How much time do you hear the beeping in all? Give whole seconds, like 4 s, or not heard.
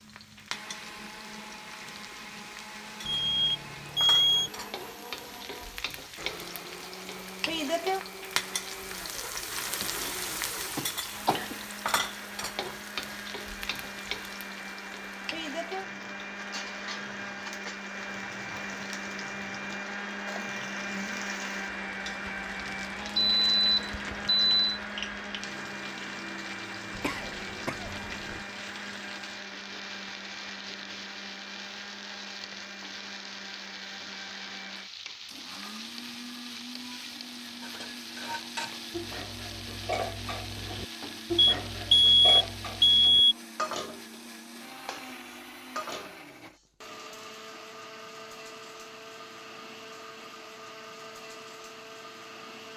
5 s.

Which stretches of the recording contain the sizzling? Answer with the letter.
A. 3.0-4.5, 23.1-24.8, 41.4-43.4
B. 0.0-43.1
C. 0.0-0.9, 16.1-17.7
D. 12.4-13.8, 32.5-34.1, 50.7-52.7
B.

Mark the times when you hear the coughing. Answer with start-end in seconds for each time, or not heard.
10.8-11.7, 26.9-28.4.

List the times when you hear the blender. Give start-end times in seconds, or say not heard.
0.0-52.7.